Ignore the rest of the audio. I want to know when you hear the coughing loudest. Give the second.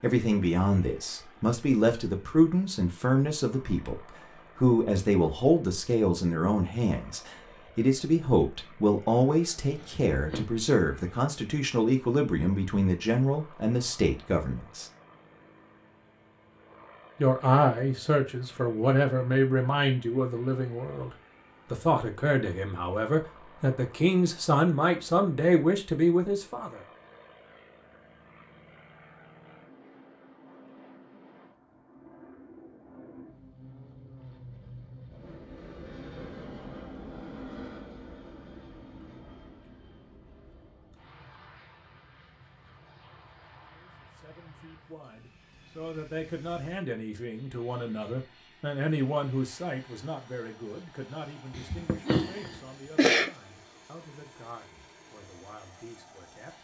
53 s.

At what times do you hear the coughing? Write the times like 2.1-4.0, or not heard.
9.8-10.5, 51.5-53.3.